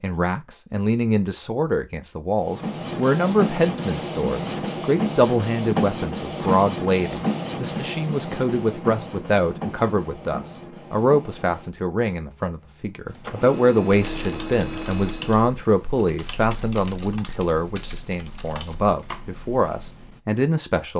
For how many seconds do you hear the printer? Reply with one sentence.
You can hear the printer for 13 seconds altogether.